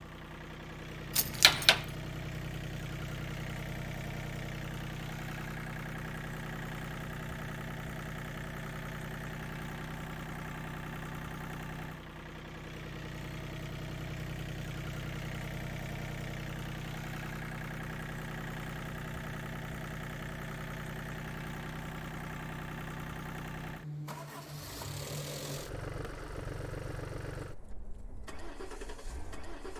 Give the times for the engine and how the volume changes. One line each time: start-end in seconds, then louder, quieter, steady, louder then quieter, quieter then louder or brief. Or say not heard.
0.0-29.7 steady.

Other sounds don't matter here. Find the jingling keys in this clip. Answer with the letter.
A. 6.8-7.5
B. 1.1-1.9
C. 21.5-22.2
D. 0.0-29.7
B.